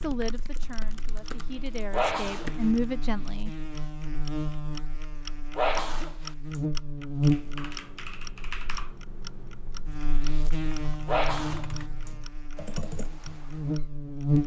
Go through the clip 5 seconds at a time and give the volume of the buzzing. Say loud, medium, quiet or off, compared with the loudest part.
medium, loud, loud.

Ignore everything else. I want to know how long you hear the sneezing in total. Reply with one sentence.
You can hear the sneezing for 2 seconds altogether.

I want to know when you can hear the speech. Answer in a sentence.
You can hear the speech from 0.0 to 3.5 s.